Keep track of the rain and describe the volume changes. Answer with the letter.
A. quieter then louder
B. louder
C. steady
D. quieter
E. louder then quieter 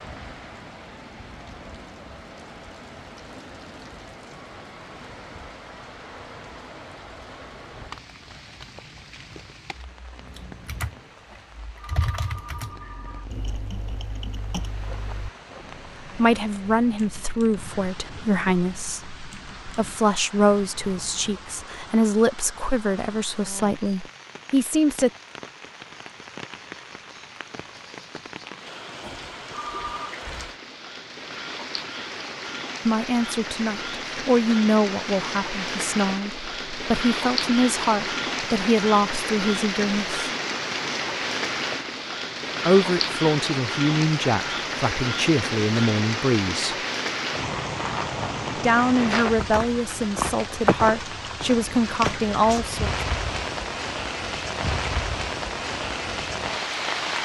B.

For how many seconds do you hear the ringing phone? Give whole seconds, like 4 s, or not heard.
3 s.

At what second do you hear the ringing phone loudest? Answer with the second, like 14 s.
30 s.